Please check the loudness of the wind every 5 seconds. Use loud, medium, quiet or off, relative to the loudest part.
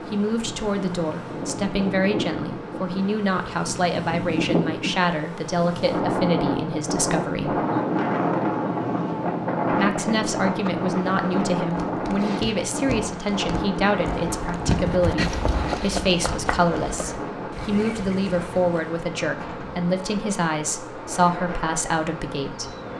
medium, loud, loud, medium, quiet.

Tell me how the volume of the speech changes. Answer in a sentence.
The loudness of the speech stays about the same.